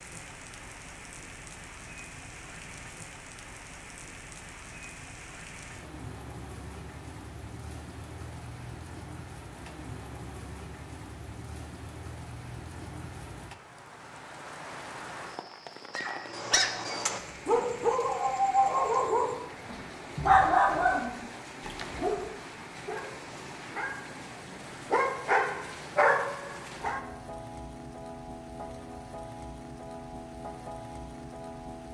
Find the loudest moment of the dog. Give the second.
20 s.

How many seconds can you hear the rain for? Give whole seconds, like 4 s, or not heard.
32 s.